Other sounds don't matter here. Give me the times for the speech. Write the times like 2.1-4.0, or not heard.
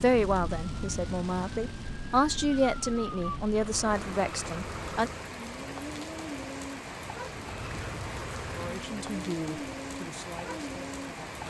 0.0-5.1, 8.6-11.3.